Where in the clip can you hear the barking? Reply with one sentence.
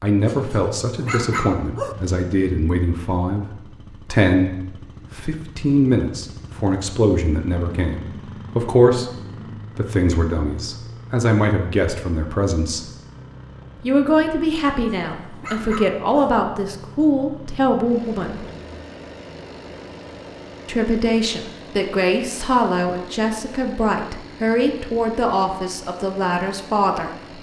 You can hear the barking from 0.2 to 1.9 s and from 14.7 to 16.3 s.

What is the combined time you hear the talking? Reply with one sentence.
You can hear the talking for 23 seconds altogether.